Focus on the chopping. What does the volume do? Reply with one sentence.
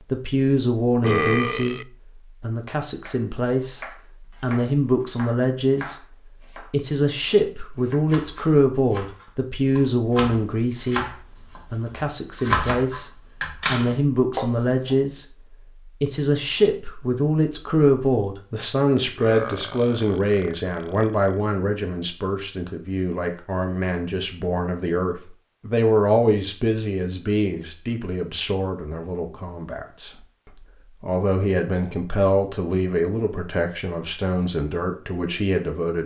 The loudness of the chopping goes up.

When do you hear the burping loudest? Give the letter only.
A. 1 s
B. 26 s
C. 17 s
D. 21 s
A.